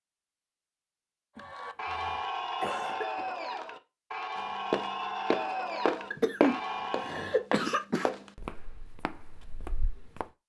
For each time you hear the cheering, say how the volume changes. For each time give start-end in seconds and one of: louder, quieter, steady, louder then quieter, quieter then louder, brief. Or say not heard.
1.4-7.5 steady.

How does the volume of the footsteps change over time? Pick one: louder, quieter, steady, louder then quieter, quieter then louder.
quieter.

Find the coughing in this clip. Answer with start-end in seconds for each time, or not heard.
1.4-3.3, 6.1-8.1.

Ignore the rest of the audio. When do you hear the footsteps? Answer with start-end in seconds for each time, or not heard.
4.7-10.2.